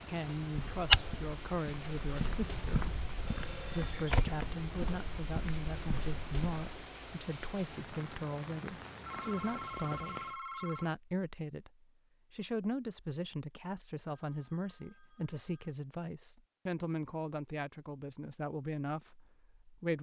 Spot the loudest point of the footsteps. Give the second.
1 s.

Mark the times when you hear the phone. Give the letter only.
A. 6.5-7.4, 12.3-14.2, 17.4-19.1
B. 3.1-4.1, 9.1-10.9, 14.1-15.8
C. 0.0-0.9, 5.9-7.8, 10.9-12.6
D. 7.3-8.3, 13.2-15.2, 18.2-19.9
B.